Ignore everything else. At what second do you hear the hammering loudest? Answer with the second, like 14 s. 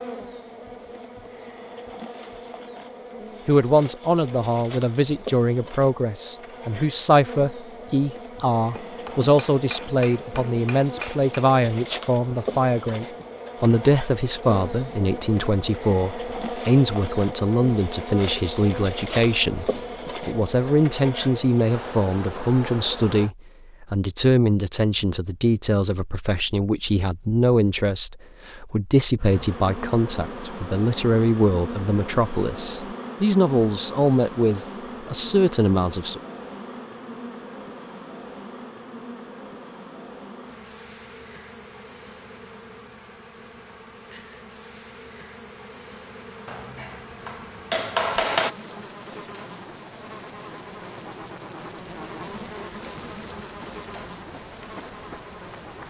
48 s.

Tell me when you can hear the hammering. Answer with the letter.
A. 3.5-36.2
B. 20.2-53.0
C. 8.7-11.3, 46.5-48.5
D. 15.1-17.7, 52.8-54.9
C.